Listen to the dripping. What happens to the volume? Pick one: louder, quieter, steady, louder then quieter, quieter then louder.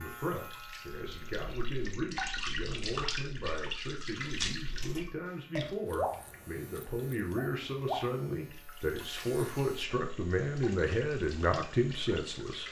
quieter.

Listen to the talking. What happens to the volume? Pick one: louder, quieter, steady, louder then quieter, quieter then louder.
louder.